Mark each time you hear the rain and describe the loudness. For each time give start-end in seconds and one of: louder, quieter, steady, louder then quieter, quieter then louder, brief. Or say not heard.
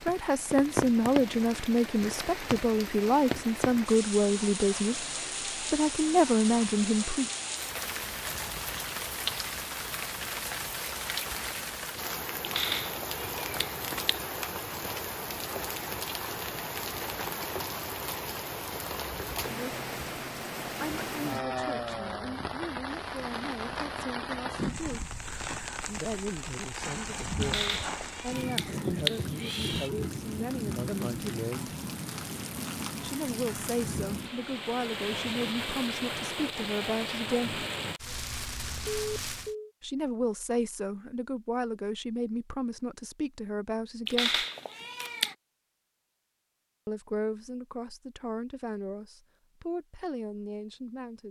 0.0-39.5 steady.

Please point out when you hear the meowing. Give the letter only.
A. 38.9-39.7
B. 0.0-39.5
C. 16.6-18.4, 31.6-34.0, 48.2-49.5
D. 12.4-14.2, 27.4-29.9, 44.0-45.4
D.